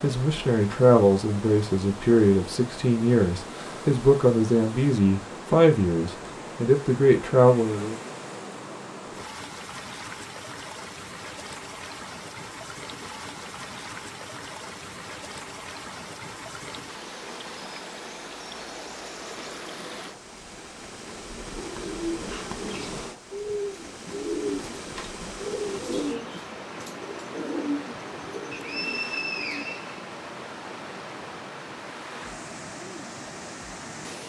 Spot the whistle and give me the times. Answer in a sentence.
The whistle can be heard from 28.5 to 30.0 s.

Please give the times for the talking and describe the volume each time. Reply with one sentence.
The talking can be heard from 0.0 to 8.0 s, at a steady volume.